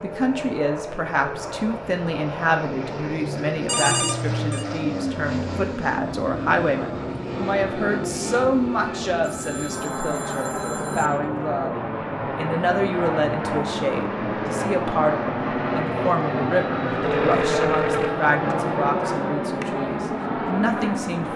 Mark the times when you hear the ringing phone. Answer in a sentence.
You can hear the ringing phone from 3.6 to 4.7 s, from 9.2 to 11.1 s and from 17.0 to 18.2 s.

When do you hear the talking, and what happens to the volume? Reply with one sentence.
The talking can be heard from 0.0 to 21.3 s, at a steady volume.